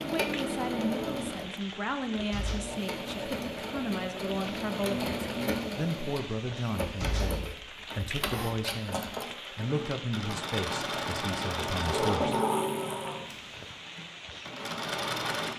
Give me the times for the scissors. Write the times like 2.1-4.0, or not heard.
not heard.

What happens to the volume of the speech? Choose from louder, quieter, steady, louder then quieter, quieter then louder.
steady.